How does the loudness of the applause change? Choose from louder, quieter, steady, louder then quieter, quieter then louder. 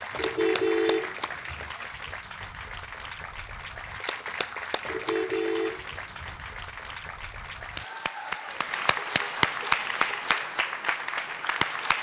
louder.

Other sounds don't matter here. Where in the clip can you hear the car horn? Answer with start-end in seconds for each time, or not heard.
0.1-1.8, 4.8-6.5, 8.4-10.3.